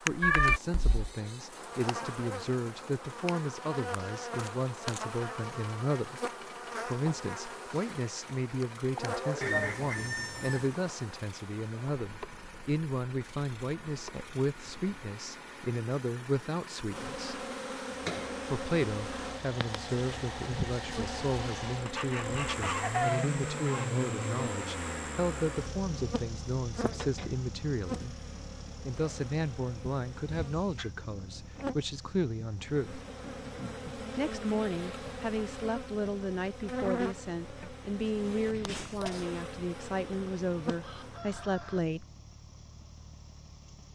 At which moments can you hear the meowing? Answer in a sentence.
You can hear the meowing from 0.2 to 1.1 s and from 30.4 to 30.9 s.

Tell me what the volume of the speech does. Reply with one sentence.
The loudness of the speech stays about the same.